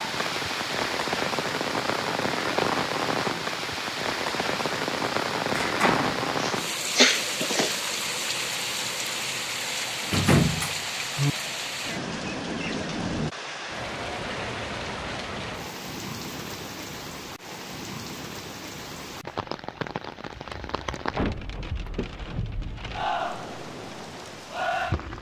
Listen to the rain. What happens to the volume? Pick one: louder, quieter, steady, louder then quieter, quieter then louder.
quieter.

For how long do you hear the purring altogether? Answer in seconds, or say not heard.
not heard.